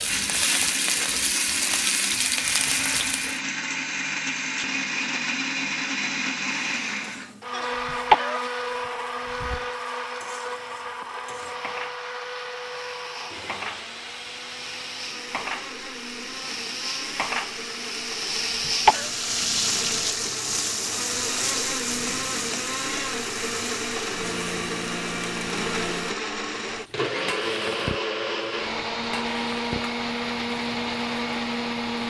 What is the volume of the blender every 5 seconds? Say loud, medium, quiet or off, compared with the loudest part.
loud, loud, medium, medium, loud, loud, loud.